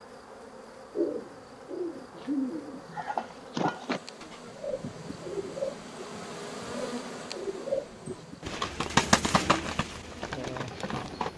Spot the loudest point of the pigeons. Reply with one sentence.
The loudest moment of the pigeons is at 9 seconds.